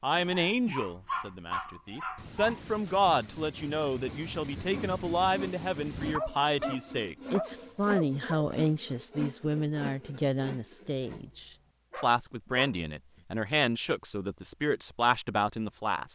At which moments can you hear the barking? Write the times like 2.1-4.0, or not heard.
0.1-2.8, 6.0-8.3, 11.2-13.2.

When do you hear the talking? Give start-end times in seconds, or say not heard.
0.0-16.1.